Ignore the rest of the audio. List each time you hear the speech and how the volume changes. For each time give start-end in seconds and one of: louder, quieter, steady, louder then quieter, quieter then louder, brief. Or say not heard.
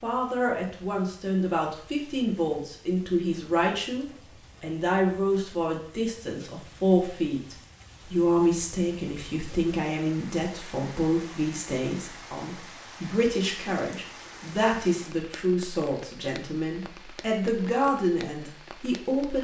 0.0-19.3 steady.